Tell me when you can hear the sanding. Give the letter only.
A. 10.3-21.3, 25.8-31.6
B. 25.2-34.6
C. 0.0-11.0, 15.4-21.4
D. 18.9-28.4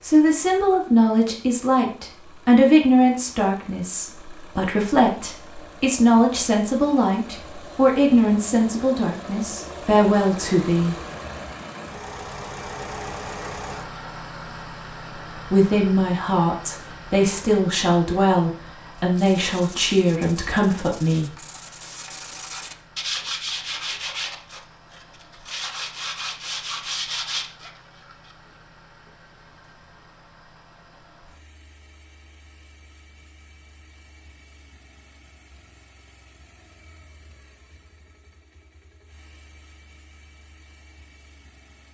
D.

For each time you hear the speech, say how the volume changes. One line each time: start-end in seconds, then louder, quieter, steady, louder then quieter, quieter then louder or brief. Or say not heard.
0.0-11.0 steady
15.4-21.4 steady.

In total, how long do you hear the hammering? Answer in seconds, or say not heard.
not heard.